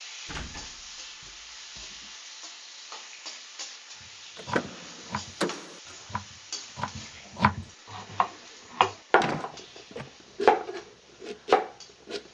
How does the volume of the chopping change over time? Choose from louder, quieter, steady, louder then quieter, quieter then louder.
louder.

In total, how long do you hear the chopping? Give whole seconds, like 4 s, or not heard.
8 s.